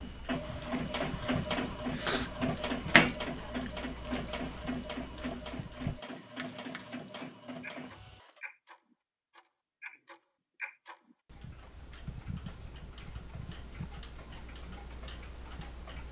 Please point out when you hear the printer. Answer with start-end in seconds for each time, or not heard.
0.0-8.4.